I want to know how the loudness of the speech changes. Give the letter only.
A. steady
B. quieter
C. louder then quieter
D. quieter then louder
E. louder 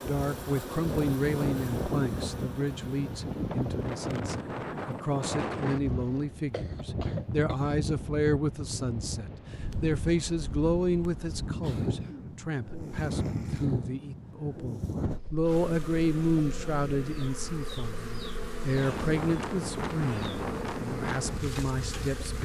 A.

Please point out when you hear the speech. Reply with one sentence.
The speech can be heard from 0.1 to 22.4 s.